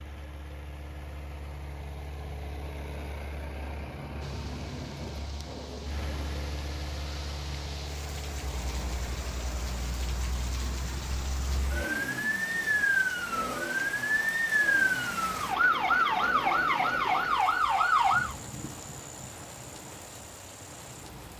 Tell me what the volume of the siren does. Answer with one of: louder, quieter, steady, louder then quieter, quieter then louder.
louder.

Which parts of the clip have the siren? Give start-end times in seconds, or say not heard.
8.5-18.4.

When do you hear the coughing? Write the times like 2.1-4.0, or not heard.
not heard.